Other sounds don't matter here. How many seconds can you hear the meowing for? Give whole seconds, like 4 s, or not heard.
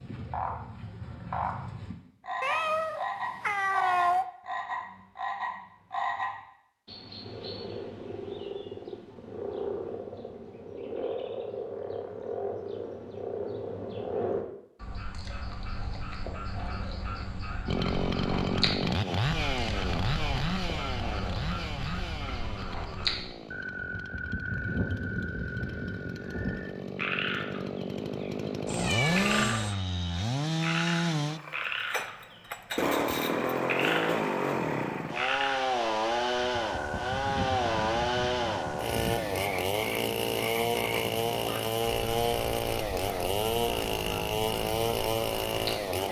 3 s.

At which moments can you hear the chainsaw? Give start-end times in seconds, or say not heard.
17.6-46.0.